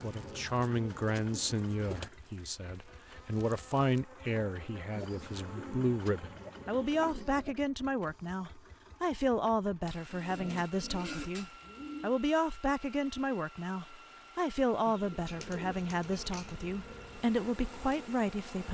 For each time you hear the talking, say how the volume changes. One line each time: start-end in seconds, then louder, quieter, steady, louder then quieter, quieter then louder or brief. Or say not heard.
0.0-18.6 steady.